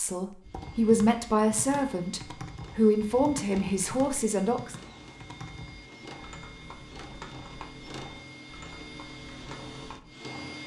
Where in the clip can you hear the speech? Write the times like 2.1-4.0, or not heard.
0.0-4.8.